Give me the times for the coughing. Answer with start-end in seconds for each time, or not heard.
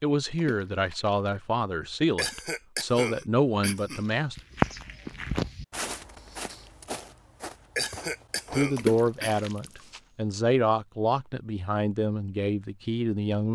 2.1-4.0, 7.8-9.3.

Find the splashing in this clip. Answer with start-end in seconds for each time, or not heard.
0.3-1.3, 8.8-9.7.